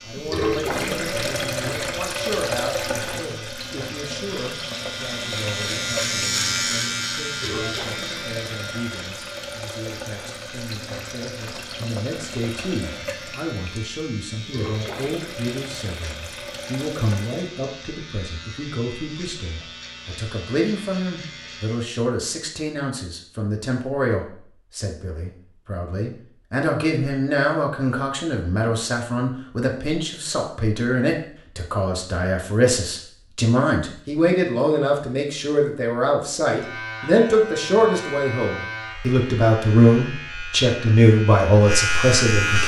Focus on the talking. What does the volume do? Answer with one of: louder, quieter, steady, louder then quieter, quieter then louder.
louder.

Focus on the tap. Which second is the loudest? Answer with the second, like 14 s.
1 s.